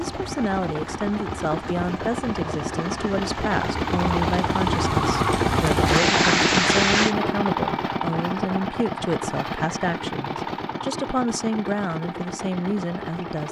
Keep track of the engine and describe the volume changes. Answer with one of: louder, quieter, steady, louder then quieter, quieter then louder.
louder then quieter.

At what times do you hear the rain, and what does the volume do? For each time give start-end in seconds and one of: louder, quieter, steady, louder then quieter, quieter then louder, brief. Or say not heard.
0.0-7.2 louder.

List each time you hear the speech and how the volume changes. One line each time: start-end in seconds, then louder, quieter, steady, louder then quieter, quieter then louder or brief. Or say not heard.
0.0-13.4 steady.